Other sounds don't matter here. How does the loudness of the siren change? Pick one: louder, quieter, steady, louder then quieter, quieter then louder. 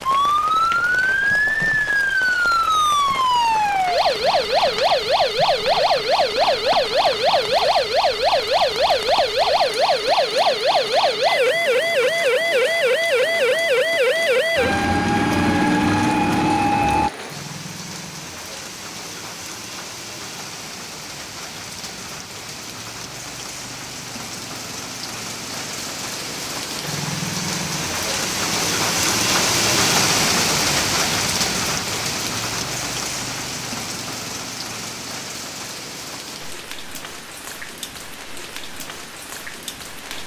steady.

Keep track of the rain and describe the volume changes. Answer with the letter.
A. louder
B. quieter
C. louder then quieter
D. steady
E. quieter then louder
C.